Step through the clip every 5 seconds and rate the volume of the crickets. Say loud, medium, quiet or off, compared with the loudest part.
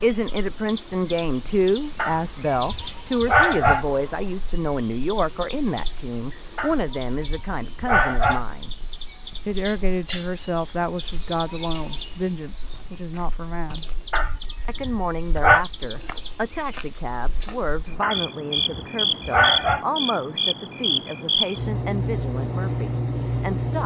loud, medium, medium, loud, loud.